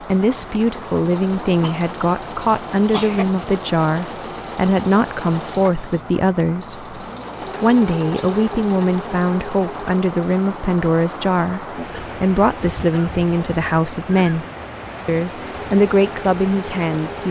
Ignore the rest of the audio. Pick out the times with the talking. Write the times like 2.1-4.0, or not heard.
0.1-6.8, 7.6-14.4, 15.1-17.2.